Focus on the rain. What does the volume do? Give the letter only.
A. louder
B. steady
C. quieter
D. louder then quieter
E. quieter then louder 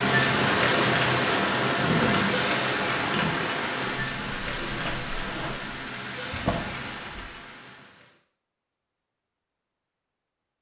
C.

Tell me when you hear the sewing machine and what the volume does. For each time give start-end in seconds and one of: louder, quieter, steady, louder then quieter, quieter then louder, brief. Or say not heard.
0.0-5.8 quieter.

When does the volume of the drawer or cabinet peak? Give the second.
2 s.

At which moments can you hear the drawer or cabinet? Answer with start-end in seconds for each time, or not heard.
1.8-3.4, 6.3-7.3.